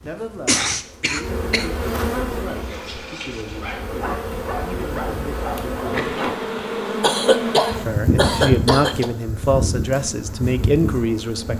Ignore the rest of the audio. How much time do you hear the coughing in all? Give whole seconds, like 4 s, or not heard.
4 s.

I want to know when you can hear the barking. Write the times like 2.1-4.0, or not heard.
2.5-6.3.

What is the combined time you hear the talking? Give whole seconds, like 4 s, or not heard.
10 s.